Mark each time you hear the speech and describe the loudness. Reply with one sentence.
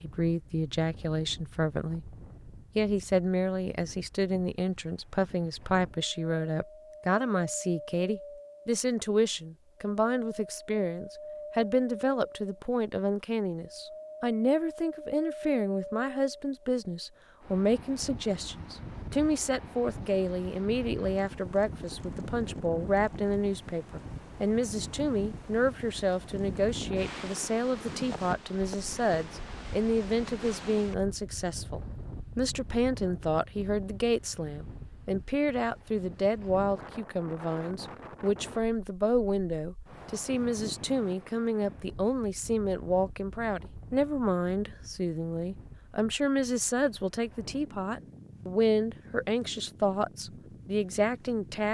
The speech can be heard briefly from 0.0 to 2.0 s; and from 2.8 to 51.7 s, at a steady volume.